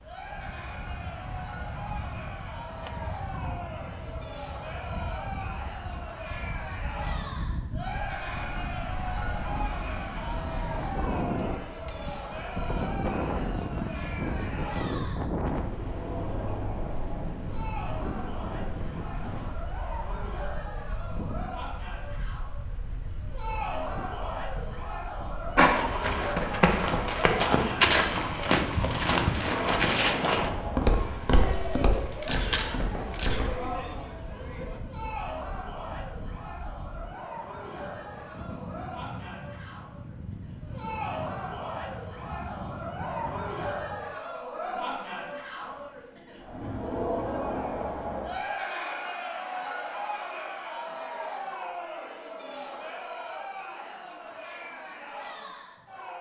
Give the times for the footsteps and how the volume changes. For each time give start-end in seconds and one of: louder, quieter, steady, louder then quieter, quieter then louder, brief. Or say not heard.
25.6-33.8 quieter.